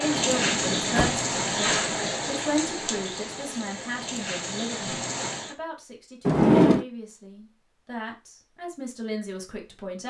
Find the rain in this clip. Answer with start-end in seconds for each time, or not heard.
0.0-5.5.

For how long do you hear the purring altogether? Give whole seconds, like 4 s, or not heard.
not heard.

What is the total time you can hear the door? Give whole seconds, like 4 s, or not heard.
2 s.